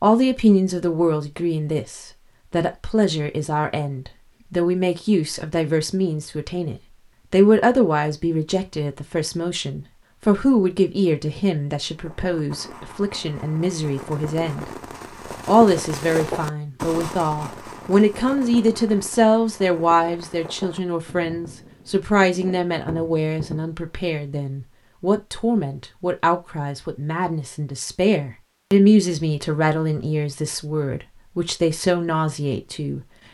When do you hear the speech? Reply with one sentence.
The speech can be heard from 0.0 to 14.7 s and from 15.4 to 33.0 s.